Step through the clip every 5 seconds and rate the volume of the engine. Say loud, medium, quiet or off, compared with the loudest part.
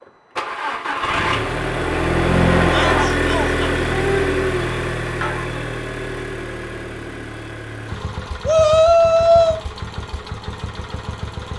loud, medium, quiet.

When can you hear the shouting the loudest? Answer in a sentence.
The volume of the shouting peaks at 9 seconds.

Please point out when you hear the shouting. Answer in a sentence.
You can hear the shouting from 2.7 to 3.6 s and from 8.4 to 9.6 s.